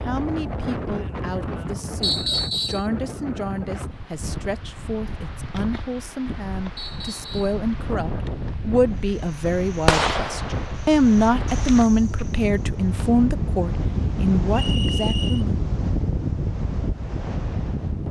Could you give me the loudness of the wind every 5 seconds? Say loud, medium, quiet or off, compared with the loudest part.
medium, medium, loud, loud.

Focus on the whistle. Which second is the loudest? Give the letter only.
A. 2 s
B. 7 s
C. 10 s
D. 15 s
A.